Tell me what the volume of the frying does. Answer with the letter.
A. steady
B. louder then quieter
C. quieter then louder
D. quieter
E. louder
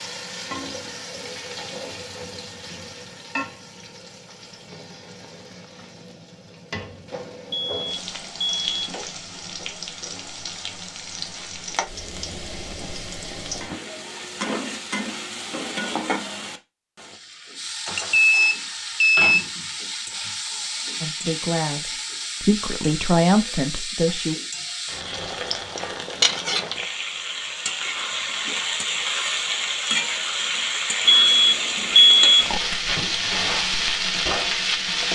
E.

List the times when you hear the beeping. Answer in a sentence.
The beeping can be heard from 7.5 to 9.1 s, from 17.9 to 19.4 s and from 31.1 to 32.6 s.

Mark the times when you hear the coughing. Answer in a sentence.
You can't hear the coughing here.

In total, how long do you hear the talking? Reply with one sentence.
You can hear the talking for 3 seconds altogether.